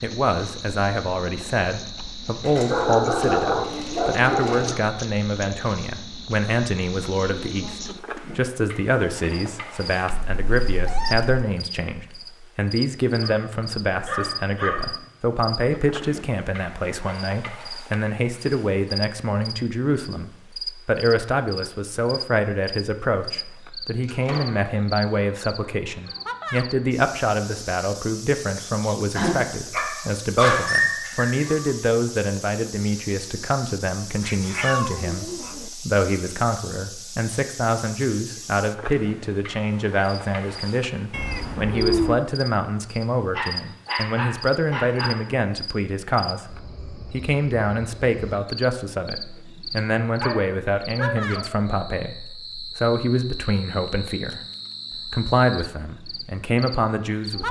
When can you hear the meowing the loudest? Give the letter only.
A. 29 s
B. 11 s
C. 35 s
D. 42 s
D.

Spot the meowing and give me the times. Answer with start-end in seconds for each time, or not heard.
10.2-11.3, 34.2-35.7, 41.1-42.1.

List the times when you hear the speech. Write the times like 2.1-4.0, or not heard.
0.0-54.4, 55.0-57.4.